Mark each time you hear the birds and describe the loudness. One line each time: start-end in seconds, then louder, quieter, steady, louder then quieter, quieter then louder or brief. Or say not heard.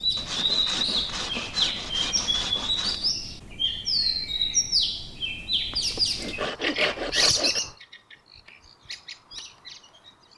0.0-10.3 quieter.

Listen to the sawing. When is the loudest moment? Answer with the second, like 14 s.
7 s.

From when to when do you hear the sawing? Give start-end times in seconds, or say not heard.
0.1-3.1, 5.7-7.6.